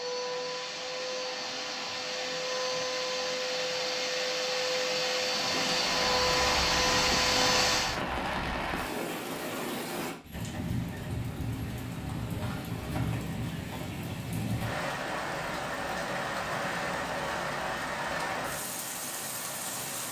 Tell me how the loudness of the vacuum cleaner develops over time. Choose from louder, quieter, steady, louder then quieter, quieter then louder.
louder.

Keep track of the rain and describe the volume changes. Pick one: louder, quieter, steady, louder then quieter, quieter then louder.
steady.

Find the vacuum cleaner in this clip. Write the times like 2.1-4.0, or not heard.
0.0-8.0.